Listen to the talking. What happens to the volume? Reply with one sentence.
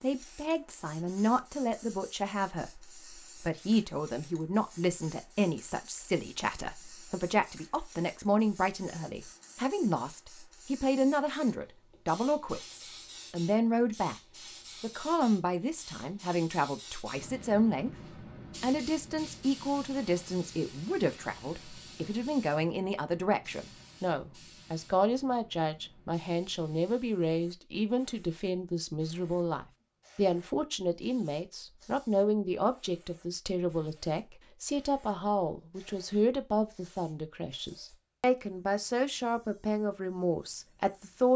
The loudness of the talking stays about the same.